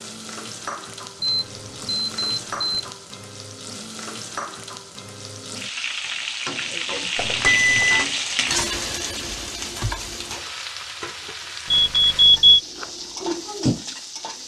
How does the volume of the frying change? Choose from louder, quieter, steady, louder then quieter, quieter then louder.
louder then quieter.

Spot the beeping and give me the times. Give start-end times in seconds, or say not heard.
1.2-2.9, 7.2-8.1, 11.7-12.6.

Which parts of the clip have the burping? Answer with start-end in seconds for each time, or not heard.
not heard.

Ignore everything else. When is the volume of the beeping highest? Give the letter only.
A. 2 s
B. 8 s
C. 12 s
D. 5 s
C.